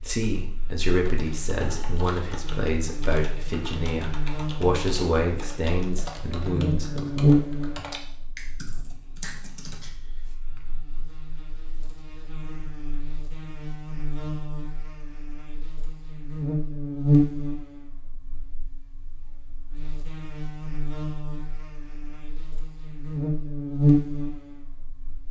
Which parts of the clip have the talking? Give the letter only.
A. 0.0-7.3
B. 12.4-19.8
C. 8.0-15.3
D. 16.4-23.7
A.